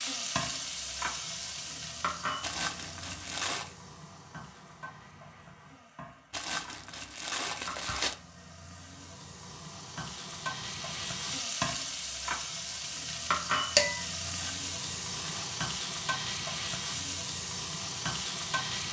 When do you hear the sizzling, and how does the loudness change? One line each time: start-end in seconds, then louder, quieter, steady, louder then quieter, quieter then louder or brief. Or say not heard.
0.0-18.8 quieter then louder.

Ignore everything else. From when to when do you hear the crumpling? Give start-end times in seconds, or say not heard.
2.4-3.8, 6.3-8.2, 14.2-15.6.